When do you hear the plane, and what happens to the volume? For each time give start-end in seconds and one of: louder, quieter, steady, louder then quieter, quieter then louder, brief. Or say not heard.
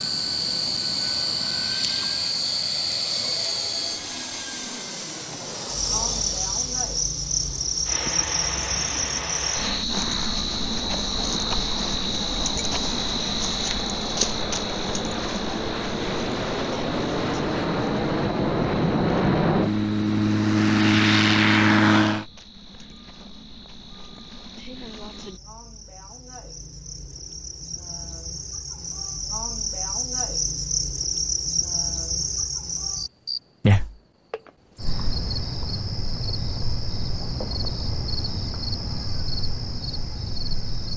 0.0-22.2 louder.